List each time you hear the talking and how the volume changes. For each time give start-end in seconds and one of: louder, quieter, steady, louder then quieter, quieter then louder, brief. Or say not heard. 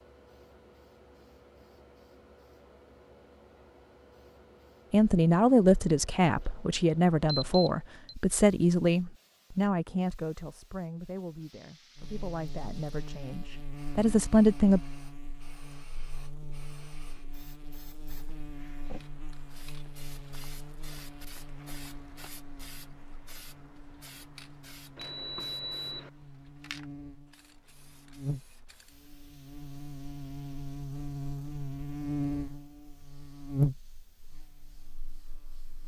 4.9-14.8 quieter then louder.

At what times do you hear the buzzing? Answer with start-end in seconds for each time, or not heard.
11.9-35.8.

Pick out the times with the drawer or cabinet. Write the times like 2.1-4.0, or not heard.
not heard.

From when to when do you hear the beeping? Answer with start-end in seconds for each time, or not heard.
7.2-8.2, 24.9-26.1.